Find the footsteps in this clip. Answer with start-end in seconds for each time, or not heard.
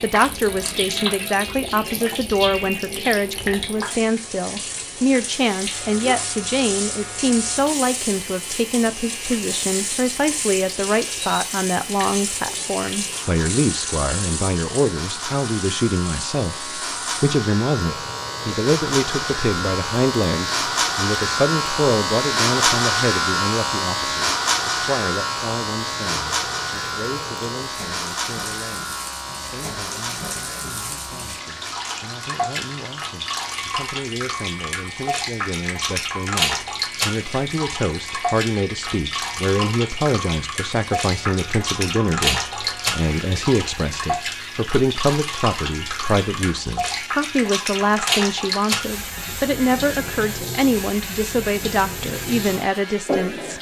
not heard.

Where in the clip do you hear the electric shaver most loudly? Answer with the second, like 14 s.
23 s.